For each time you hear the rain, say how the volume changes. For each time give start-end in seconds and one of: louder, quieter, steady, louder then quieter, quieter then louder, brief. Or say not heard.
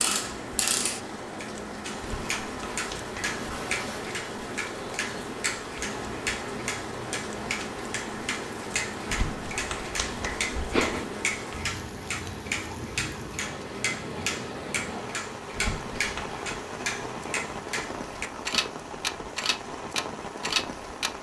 0.0-21.1 steady.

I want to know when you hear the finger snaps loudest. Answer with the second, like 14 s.
11 s.